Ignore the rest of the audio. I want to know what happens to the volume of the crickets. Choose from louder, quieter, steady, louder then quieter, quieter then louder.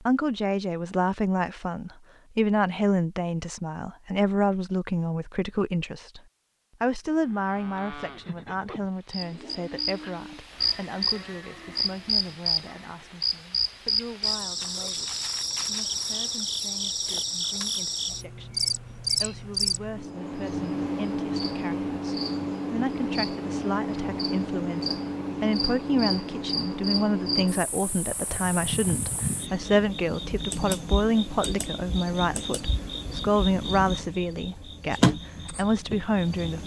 steady.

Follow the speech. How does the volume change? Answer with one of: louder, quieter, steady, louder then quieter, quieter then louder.
quieter then louder.